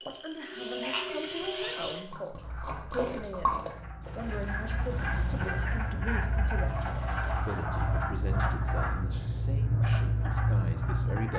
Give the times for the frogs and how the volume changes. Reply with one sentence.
You can hear the frogs from 0.0 to 11.3 s, getting quieter then louder.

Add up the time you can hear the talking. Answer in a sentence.
The talking can be heard for 11 seconds in total.